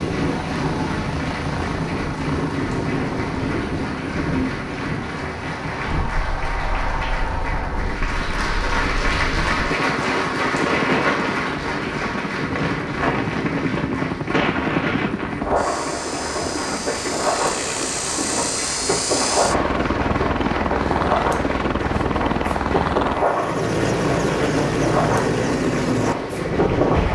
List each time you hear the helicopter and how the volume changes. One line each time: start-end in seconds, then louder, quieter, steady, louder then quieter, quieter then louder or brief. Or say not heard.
0.0-27.1 louder.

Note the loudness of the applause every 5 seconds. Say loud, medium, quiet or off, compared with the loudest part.
medium, loud, loud, medium, medium, medium.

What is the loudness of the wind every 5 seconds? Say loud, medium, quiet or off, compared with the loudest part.
loud, medium, loud, loud, loud, loud.